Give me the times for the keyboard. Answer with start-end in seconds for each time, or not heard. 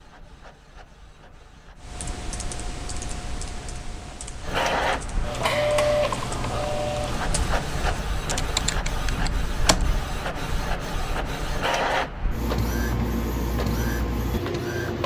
1.8-9.9.